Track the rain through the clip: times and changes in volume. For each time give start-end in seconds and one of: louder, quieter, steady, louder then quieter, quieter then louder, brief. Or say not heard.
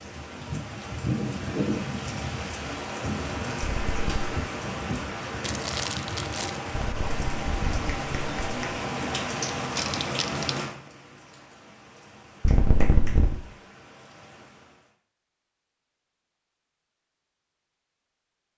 0.0-14.9 quieter.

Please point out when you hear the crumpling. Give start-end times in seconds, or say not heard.
5.4-6.6, 9.6-10.7.